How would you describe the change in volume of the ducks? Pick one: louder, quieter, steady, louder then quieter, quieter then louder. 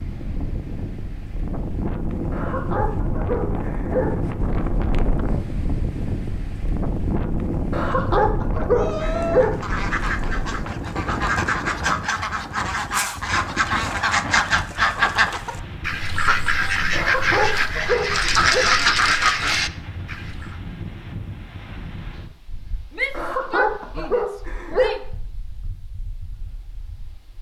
louder.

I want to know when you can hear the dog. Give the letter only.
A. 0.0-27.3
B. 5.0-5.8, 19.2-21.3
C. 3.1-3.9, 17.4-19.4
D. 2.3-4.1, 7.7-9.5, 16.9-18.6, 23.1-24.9
D.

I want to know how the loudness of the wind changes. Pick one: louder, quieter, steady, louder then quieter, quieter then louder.
quieter.